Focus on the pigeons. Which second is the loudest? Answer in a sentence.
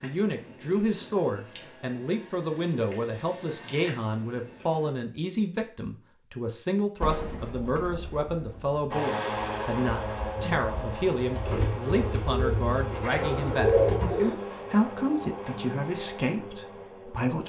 The volume of the pigeons peaks at 14 seconds.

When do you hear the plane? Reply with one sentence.
You can hear the plane from 0.0 to 5.0 s and from 8.9 to 17.4 s.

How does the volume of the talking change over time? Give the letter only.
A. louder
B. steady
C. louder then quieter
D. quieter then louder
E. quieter
B.